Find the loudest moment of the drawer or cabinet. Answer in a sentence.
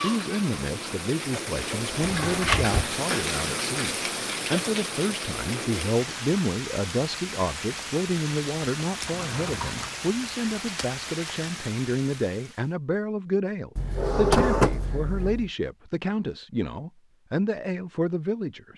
The loudest moment of the drawer or cabinet is at 14 seconds.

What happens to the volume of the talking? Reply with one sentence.
The volume of the talking stays about the same.